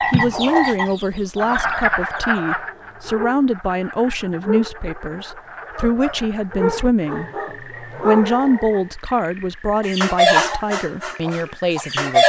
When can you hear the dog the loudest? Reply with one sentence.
The volume of the dog peaks at 8 seconds.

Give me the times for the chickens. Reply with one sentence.
The chickens can be heard from 0.0 to 2.4 s and from 9.8 to 12.2 s.